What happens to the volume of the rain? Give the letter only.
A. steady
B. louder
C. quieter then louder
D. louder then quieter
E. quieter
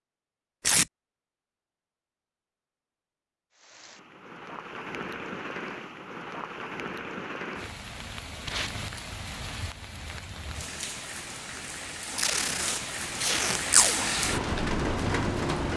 B.